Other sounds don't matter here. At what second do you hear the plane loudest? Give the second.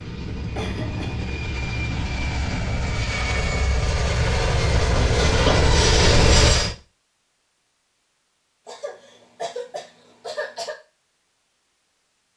6 s.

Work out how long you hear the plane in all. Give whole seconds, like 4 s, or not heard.
7 s.